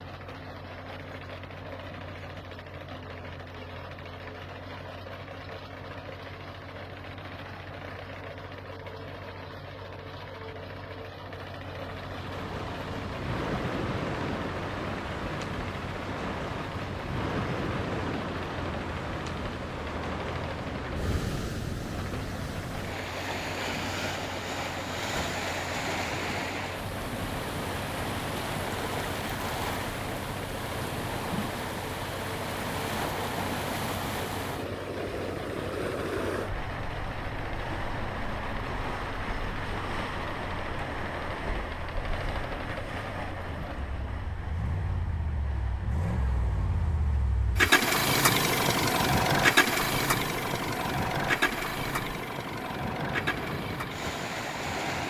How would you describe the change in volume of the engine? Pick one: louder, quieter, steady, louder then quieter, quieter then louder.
louder.